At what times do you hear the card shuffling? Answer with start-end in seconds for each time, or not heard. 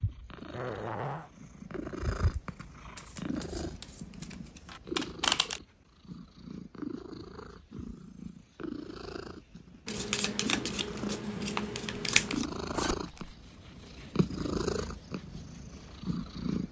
3.0-5.6, 9.8-12.4.